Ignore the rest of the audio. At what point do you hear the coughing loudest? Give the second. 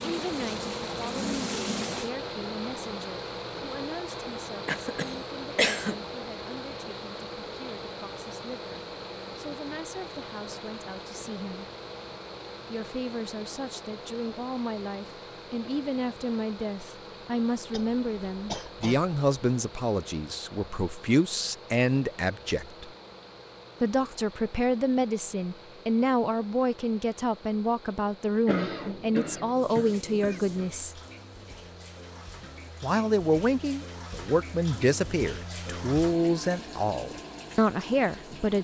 6 s.